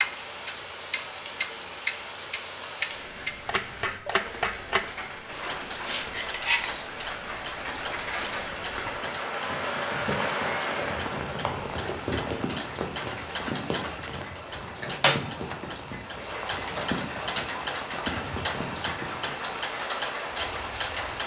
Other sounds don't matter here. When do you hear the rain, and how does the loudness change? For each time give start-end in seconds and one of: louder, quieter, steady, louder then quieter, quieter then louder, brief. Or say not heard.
0.0-21.2 louder then quieter.